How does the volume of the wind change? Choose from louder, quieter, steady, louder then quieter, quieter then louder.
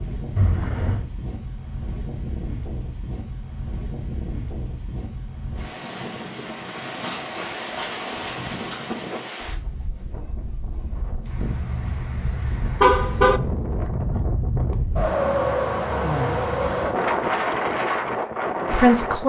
louder.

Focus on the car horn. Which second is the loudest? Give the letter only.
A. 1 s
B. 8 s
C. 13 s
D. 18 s
C.